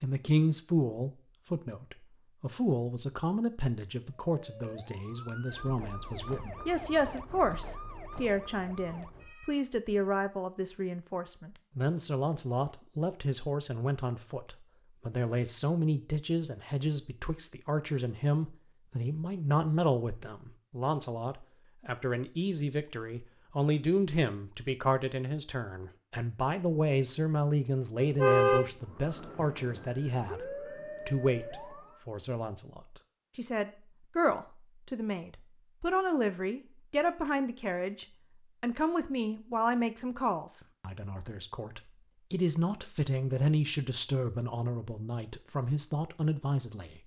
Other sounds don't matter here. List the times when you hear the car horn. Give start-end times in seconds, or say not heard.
28.0-28.6.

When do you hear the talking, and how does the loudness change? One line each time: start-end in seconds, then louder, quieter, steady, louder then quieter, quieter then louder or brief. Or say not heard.
0.0-47.0 steady.